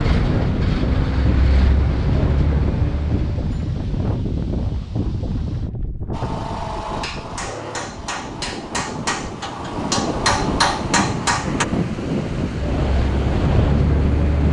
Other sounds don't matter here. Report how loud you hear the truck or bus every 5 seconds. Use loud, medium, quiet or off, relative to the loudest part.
loud, off, loud.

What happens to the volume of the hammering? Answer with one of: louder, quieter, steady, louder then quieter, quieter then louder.
louder.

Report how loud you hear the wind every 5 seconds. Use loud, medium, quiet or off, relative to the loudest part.
loud, medium, loud.